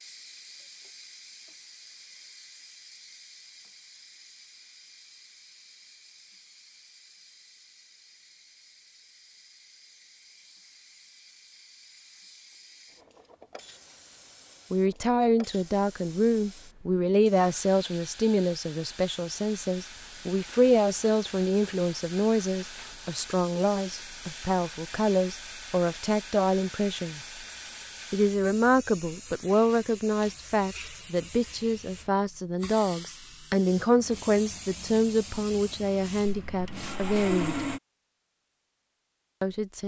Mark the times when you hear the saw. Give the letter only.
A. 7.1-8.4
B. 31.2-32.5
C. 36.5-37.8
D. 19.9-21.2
C.